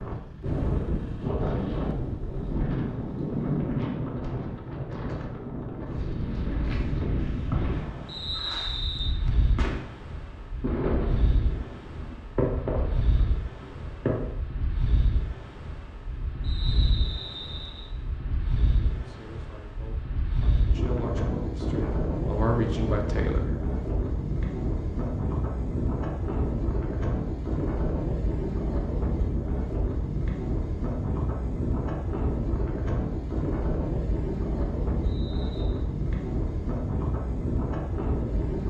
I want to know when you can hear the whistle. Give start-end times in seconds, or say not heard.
8.1-9.2, 16.4-17.9, 35.0-35.8.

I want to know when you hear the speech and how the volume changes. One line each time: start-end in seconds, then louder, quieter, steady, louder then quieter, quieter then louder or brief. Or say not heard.
18.9-23.5 louder.